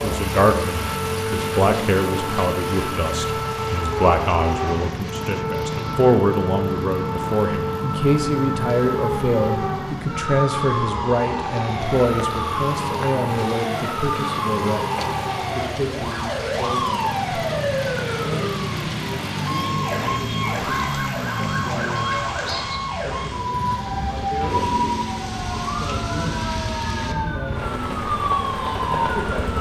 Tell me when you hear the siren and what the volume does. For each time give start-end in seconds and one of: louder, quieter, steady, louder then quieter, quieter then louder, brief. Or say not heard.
0.0-29.4 steady.